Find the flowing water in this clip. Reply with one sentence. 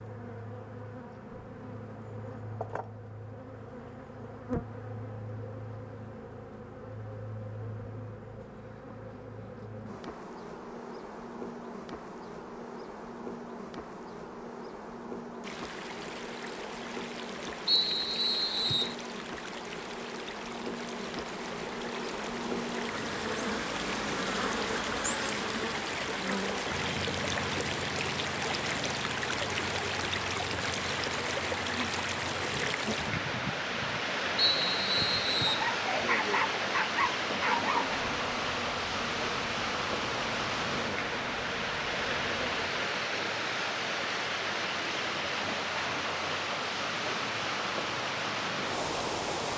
The flowing water can be heard from 15.4 to 49.5 s.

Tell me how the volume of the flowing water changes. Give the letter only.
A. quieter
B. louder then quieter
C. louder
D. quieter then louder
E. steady
C.